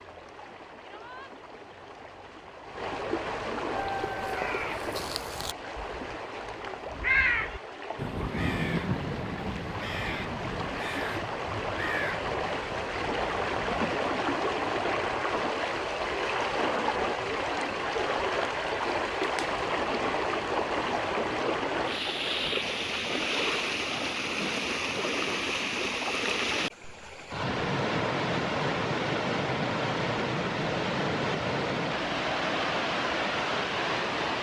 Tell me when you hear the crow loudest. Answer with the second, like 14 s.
7 s.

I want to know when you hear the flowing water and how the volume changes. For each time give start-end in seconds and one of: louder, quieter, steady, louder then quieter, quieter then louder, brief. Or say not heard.
0.0-34.3 louder.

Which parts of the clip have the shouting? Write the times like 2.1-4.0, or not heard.
0.8-1.4.